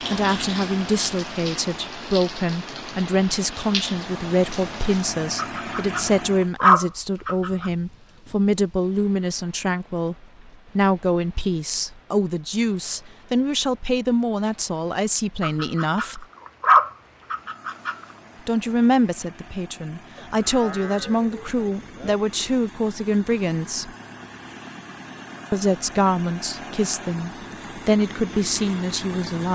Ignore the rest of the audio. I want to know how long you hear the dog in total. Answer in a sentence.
The dog can be heard for 5 seconds in total.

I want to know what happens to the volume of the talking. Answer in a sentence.
The volume of the talking stays about the same.